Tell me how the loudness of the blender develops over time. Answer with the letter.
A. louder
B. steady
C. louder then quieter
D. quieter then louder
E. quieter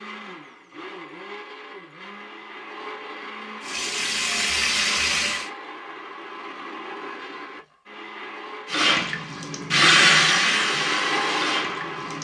A.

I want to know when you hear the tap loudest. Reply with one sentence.
The loudest moment of the tap is at 10 seconds.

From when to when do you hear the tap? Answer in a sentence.
You can hear the tap from 3.6 to 5.5 s and from 8.7 to 12.2 s.